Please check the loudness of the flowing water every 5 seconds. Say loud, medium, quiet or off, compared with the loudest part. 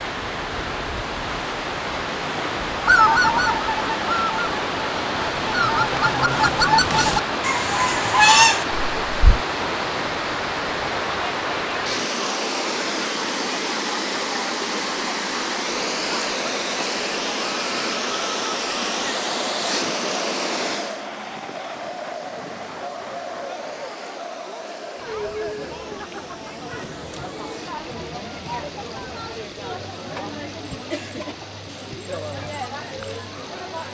loud, loud, loud, loud, medium, quiet, quiet.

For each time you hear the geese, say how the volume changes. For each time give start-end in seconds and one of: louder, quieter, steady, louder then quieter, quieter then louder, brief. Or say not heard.
2.8-9.4 quieter then louder.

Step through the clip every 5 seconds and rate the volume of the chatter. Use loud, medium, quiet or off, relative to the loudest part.
off, off, loud, loud, loud, loud, loud.